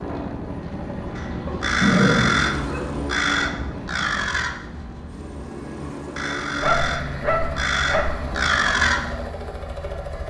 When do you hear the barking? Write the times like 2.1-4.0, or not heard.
1.4-2.9, 6.6-8.3.